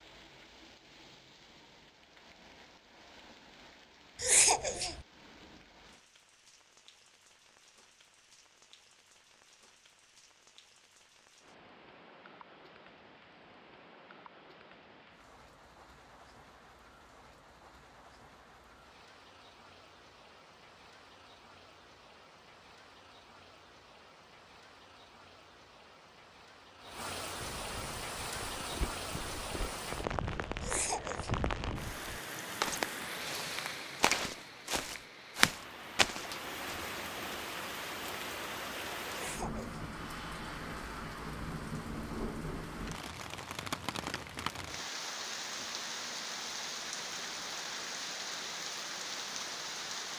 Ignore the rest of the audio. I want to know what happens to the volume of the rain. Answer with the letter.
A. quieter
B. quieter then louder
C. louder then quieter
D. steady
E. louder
E.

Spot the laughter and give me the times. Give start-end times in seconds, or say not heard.
4.2-5.0, 30.6-31.4, 39.1-39.8.